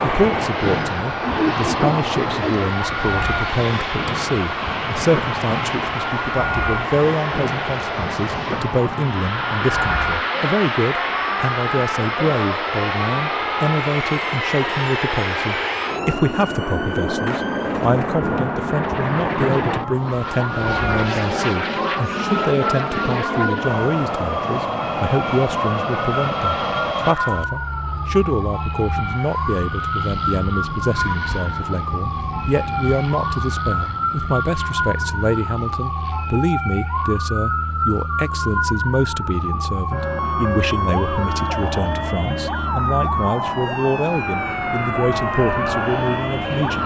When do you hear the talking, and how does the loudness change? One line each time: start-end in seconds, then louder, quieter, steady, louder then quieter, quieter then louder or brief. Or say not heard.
0.0-46.8 steady.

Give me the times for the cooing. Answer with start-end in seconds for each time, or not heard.
1.2-2.6.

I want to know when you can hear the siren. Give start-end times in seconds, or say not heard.
0.0-46.8.